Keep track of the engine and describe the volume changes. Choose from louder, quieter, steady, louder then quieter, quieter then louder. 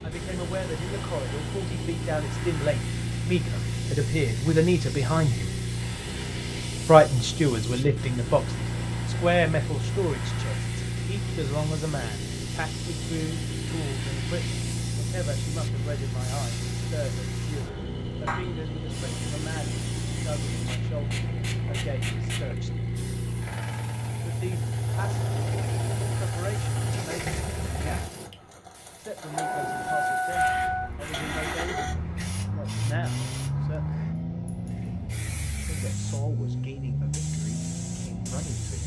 steady.